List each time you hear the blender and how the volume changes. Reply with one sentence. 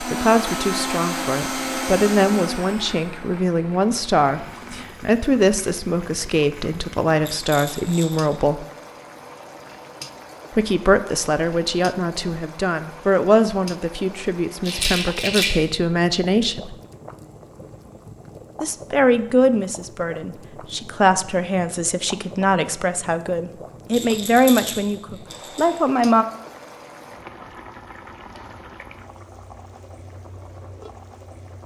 The blender can be heard from 0.0 to 4.9 s, getting quieter.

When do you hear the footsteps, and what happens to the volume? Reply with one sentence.
You can't hear the footsteps here.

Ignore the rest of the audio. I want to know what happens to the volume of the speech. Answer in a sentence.
The loudness of the speech stays about the same.